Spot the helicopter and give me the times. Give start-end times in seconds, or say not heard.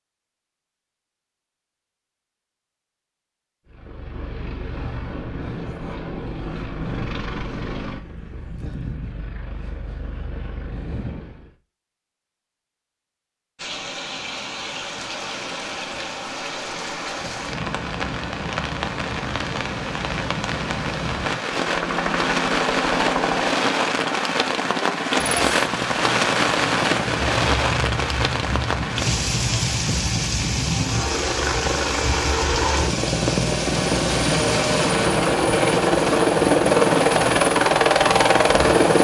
3.6-11.6, 21.5-38.9.